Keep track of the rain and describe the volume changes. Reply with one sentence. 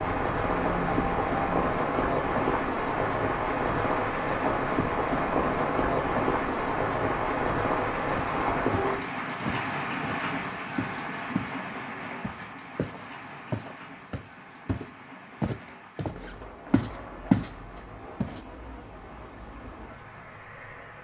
The volume of the rain goes down.